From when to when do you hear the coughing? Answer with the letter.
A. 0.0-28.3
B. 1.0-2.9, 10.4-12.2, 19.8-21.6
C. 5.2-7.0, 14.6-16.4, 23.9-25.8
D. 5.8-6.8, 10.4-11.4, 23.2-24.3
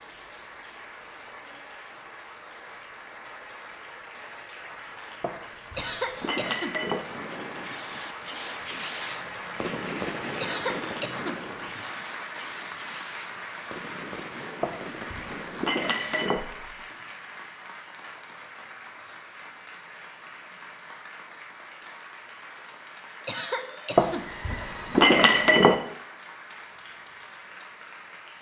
D.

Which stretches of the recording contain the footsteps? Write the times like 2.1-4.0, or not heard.
not heard.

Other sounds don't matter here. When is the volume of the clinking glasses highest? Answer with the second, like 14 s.
25 s.